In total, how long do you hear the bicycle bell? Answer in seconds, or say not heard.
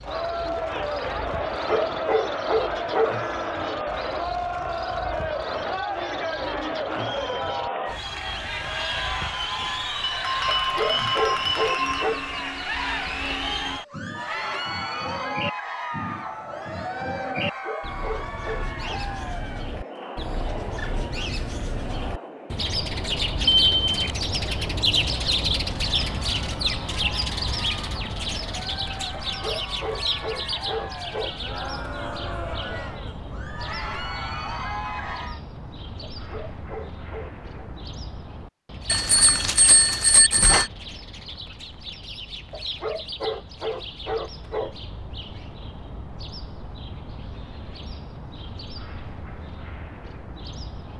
4 s.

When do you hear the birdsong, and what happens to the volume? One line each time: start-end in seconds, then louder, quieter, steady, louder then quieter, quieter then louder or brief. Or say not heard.
0.0-50.9 louder then quieter.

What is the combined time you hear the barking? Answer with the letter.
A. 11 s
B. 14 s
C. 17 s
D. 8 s
A.